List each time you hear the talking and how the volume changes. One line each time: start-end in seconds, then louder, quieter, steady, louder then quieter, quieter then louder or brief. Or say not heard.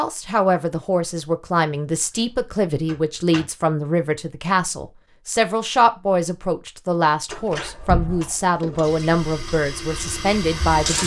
0.0-11.0 steady.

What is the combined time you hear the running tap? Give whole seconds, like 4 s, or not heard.
2 s.